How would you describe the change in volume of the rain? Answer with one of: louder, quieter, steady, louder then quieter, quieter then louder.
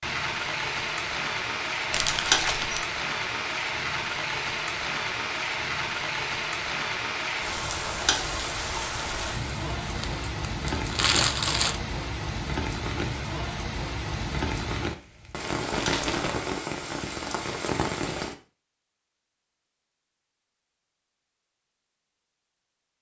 steady.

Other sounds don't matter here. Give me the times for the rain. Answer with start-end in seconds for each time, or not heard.
0.0-18.4.